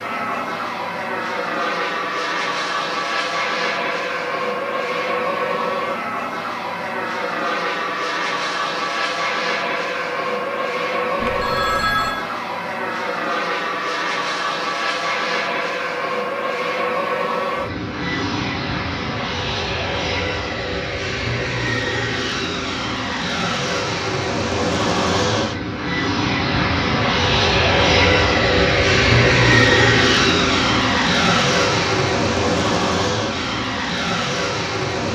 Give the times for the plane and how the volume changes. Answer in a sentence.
The plane can be heard from 0.0 to 35.0 s, getting louder.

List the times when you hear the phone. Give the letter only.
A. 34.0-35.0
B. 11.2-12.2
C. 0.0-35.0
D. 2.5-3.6
B.